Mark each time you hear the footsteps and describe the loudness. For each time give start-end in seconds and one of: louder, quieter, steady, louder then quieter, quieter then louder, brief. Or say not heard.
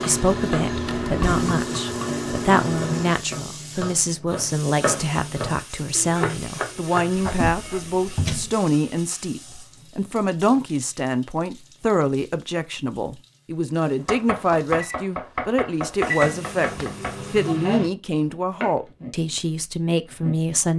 not heard.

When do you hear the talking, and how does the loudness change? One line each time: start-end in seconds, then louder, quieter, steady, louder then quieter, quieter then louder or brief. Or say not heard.
0.0-20.7 steady.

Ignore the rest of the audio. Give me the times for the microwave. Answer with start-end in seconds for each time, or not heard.
0.0-3.1, 13.9-17.9.